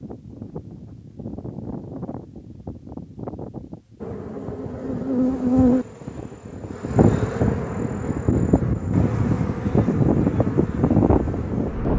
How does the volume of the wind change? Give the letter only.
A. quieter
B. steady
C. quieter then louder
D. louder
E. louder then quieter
D.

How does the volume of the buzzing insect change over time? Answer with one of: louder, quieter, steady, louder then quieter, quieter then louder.
quieter.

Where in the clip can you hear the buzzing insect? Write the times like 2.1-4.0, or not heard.
4.0-11.9.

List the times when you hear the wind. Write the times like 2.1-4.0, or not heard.
0.0-11.9.